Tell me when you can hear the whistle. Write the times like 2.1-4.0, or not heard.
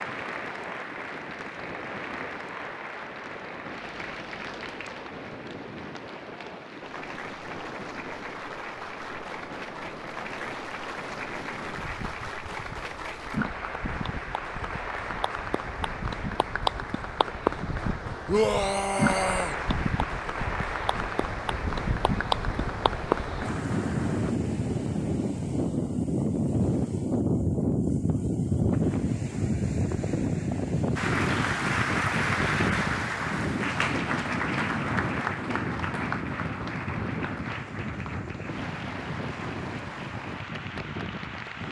not heard.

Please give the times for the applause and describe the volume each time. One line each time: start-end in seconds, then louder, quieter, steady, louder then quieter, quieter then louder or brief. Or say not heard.
0.0-24.4 louder
30.9-41.6 quieter.